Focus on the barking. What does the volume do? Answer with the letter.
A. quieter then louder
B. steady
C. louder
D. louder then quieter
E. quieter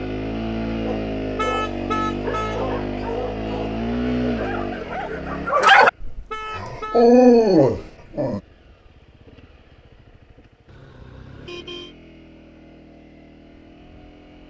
C.